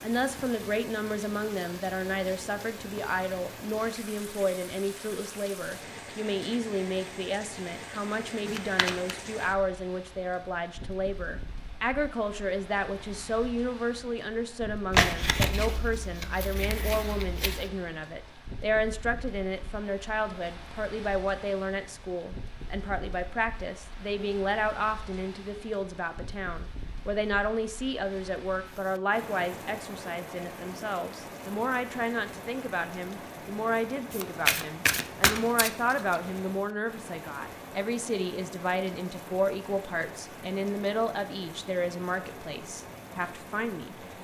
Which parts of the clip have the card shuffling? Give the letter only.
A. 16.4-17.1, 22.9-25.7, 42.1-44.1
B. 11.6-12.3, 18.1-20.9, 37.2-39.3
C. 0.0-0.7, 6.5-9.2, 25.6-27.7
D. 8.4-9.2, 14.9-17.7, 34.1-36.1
D.